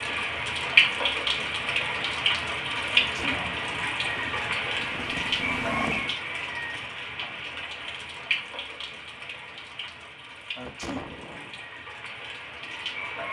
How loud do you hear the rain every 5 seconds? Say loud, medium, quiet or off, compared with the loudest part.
loud, medium, quiet.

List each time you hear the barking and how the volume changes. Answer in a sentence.
The barking can't be heard in this clip.